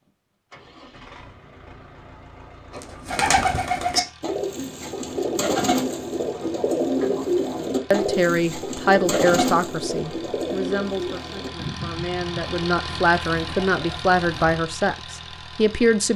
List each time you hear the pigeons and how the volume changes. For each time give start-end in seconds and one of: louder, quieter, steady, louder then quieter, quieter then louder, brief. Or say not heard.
2.7-14.6 quieter.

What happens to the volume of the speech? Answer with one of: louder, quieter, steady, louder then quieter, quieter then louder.
quieter then louder.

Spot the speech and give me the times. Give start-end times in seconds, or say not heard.
7.9-16.1.